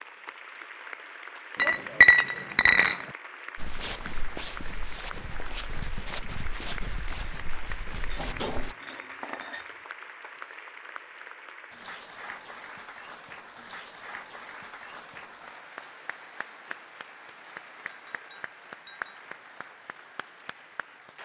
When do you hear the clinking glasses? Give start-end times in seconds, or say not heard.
1.6-3.0, 8.1-9.8, 17.9-19.2.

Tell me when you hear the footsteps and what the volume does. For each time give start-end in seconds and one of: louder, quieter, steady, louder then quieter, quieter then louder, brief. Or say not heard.
3.5-8.8 steady.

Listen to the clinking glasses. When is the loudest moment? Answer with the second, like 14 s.
2 s.